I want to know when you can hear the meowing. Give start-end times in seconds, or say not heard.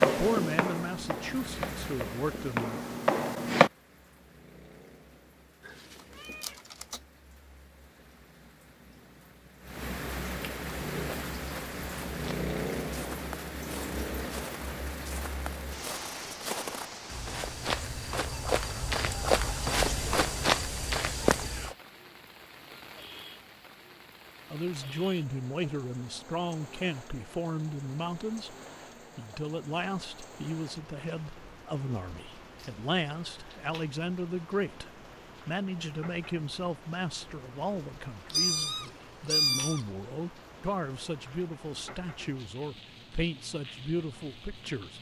5.7-7.0, 38.3-39.8.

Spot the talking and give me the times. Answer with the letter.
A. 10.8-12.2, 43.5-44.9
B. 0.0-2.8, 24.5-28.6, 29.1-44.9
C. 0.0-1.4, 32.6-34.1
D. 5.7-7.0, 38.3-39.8
B.